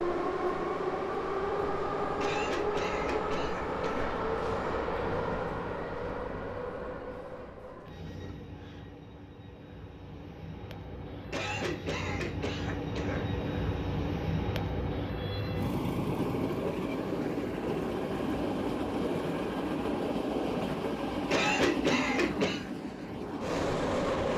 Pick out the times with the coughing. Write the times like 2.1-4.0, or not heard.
2.2-4.2, 11.3-13.3, 21.3-22.7.